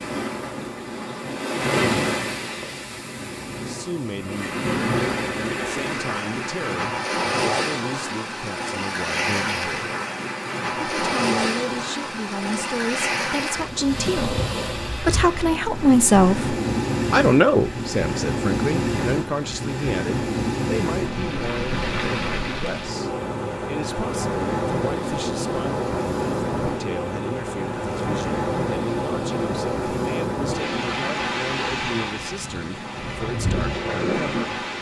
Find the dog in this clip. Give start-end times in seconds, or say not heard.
not heard.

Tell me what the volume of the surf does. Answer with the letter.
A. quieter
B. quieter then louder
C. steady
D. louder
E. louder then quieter
C.